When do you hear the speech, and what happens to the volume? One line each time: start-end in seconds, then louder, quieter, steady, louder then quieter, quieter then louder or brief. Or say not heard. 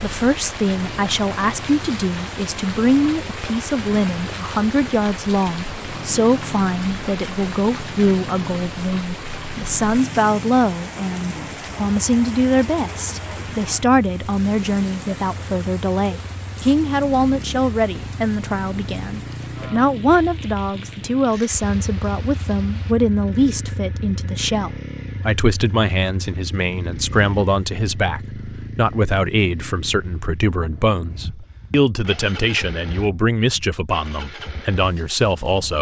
0.0-35.7 steady.